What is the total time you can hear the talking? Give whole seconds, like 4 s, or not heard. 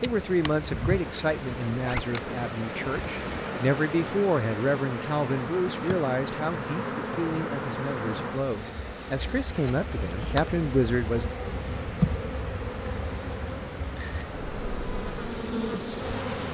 11 s.